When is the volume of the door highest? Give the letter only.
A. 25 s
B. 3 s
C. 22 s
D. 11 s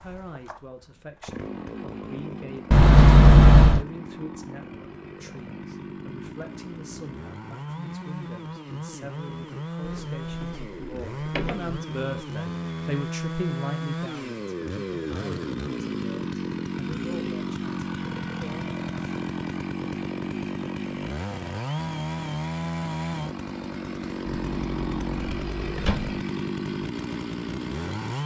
B.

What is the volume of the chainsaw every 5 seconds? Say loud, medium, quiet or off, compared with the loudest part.
medium, medium, loud, loud, loud, loud.